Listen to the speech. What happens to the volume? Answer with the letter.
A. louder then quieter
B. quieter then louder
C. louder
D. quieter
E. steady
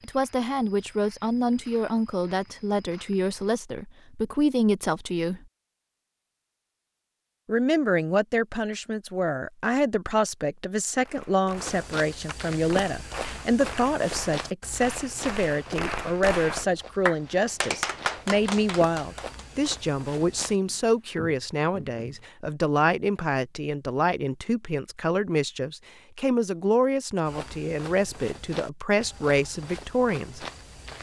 E.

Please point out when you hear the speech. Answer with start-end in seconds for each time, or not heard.
0.0-5.4, 7.5-30.4.